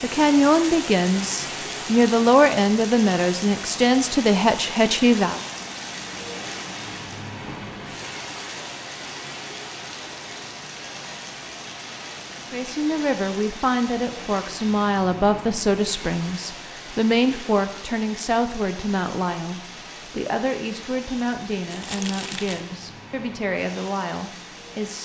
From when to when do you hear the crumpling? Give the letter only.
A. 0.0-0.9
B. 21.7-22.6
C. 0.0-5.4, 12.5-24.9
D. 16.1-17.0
B.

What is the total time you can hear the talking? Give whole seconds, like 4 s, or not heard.
18 s.